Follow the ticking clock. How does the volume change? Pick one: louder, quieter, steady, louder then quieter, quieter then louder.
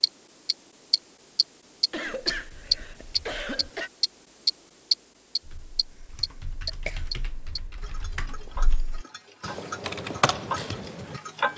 louder then quieter.